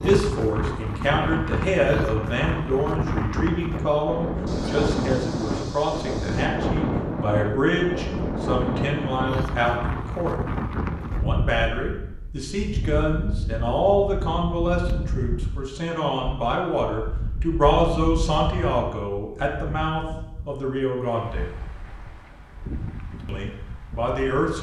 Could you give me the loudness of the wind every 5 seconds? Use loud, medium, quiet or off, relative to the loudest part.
loud, loud, medium, medium, quiet.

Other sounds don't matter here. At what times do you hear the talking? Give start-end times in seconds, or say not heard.
0.0-10.4, 11.2-21.4, 23.2-24.5.